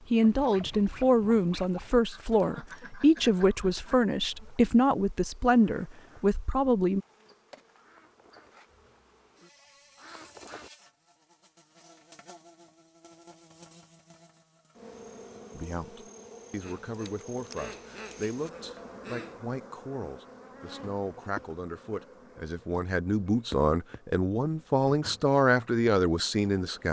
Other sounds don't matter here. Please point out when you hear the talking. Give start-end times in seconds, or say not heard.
0.1-7.0, 15.5-26.8.